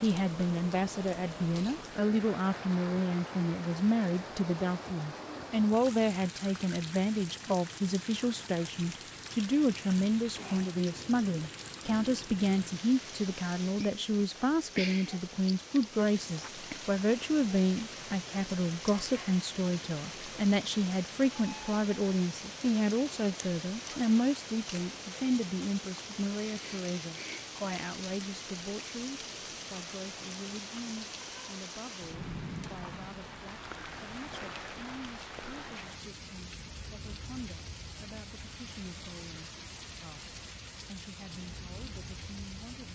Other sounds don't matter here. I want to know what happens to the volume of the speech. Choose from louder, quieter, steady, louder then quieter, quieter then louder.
quieter.